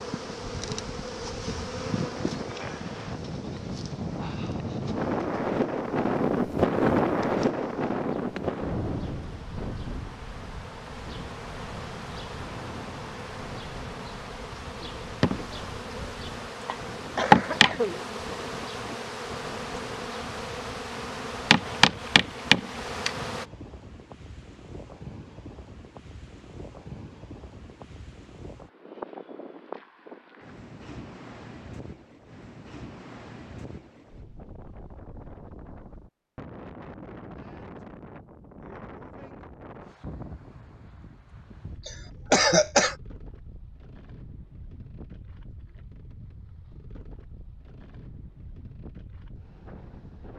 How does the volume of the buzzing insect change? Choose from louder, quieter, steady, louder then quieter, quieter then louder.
quieter then louder.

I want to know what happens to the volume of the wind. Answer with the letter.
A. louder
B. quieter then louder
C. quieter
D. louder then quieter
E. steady
C.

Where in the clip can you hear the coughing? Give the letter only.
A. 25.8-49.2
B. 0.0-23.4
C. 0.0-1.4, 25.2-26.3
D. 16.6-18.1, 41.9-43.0
D.